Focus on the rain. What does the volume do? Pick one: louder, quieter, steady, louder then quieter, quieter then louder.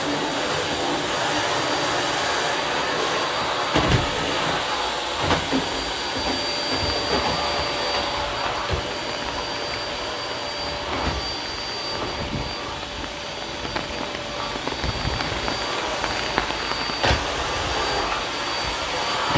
louder then quieter.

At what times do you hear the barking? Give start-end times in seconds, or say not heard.
not heard.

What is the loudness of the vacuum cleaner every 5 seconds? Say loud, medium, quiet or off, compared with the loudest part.
loud, loud, medium, loud.